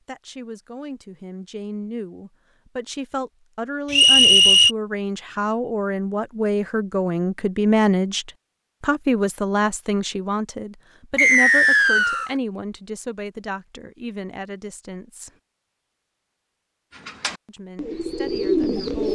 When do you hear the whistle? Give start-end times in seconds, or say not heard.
3.9-4.7, 11.2-12.3.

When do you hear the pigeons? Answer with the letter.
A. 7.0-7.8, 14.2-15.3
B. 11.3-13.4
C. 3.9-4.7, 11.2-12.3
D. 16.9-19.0
D.